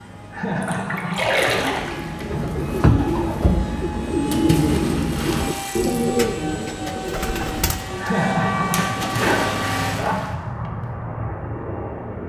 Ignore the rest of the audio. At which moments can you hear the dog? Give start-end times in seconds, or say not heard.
not heard.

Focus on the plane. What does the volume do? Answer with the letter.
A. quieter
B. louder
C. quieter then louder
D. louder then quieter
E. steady
B.